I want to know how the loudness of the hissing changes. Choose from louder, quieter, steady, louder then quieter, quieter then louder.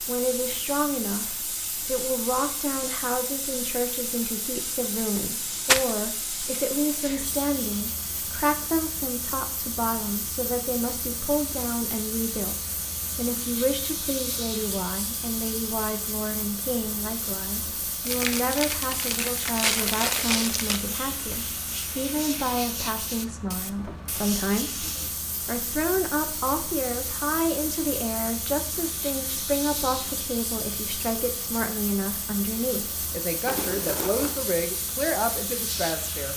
steady.